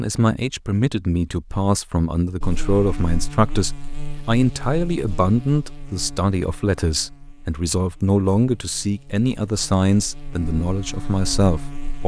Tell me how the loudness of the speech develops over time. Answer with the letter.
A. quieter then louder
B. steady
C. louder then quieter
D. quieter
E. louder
B.